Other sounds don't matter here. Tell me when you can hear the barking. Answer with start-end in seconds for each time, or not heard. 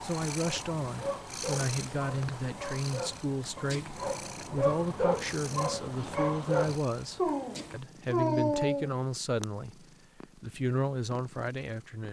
0.4-8.9.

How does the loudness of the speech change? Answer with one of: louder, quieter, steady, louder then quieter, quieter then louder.
steady.